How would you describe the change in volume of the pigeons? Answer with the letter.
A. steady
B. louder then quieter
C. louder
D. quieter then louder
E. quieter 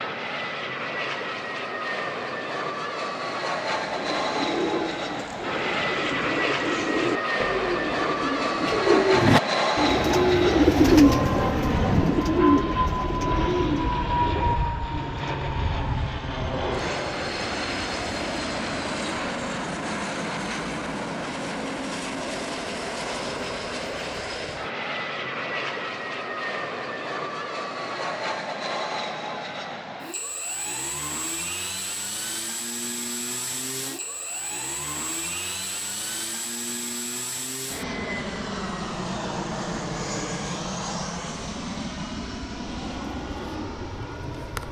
B.